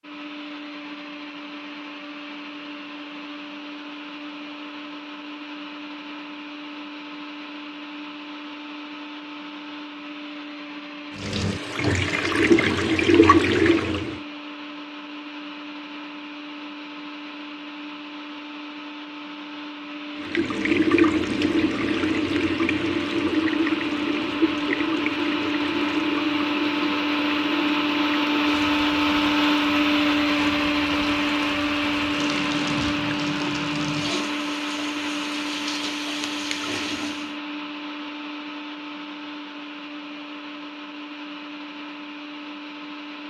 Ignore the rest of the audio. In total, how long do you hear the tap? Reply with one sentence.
You can hear the tap for 20 seconds altogether.